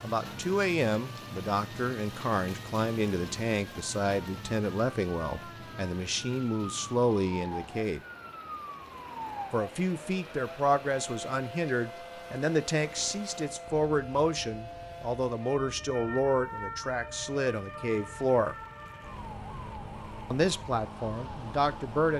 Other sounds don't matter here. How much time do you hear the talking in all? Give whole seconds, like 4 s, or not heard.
19 s.